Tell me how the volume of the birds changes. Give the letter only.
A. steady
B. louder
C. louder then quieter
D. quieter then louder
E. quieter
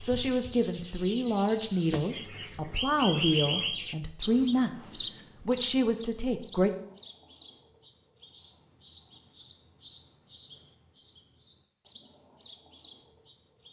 E.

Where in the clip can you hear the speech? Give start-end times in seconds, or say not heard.
0.0-6.7.